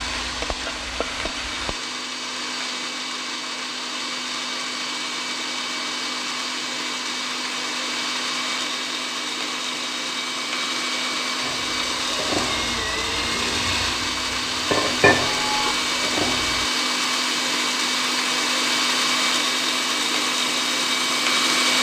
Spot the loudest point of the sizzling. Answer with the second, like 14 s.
15 s.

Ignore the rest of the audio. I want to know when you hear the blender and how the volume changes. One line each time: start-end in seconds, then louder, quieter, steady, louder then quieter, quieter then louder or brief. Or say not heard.
0.0-21.7 louder.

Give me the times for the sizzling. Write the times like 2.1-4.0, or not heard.
0.0-1.8, 11.4-16.7.